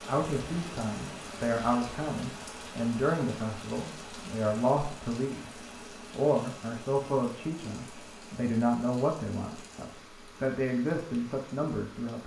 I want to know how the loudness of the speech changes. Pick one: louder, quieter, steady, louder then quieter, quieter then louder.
steady.